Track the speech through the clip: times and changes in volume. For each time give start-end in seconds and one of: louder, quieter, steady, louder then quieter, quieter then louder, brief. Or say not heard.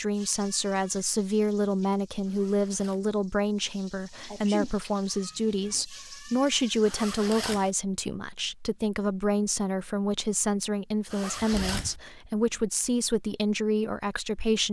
0.0-14.6 steady.